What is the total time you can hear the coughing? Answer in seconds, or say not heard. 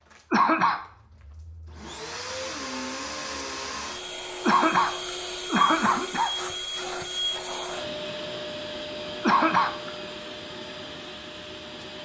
3 s.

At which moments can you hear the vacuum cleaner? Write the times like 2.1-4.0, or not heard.
0.0-11.9.